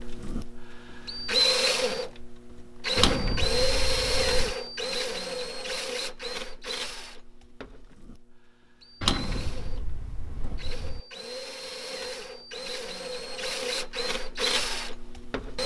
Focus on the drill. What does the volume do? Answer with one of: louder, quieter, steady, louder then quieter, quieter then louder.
quieter then louder.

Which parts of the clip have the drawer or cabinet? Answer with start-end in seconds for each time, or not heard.
3.0-4.5, 9.0-11.0.